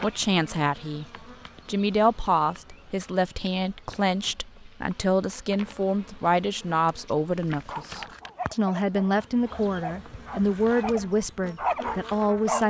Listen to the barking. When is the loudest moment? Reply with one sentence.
The loudest moment of the barking is at 12 seconds.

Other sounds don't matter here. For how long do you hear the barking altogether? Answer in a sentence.
You can hear the barking for 5 seconds altogether.